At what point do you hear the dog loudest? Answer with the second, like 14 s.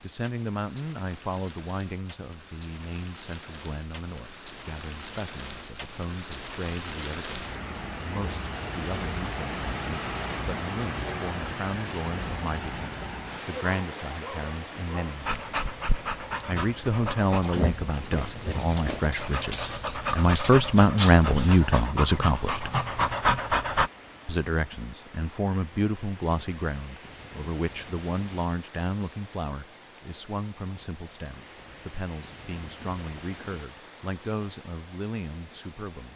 23 s.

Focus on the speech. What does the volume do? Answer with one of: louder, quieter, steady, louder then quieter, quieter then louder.
louder then quieter.